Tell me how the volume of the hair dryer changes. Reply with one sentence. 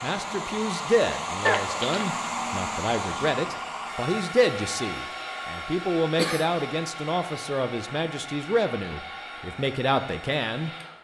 The loudness of the hair dryer goes down.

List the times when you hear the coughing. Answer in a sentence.
You can hear the coughing from 1.4 to 2.1 s and from 6.2 to 6.7 s.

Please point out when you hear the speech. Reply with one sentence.
The speech can be heard from 0.0 to 10.7 s.